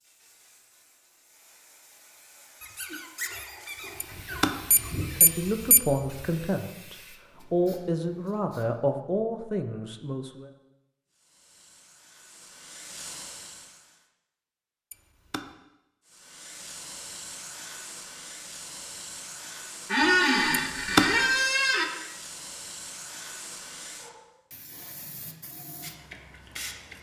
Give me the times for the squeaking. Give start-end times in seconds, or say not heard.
2.6-5.2, 19.9-21.9.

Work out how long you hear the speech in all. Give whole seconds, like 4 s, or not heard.
5 s.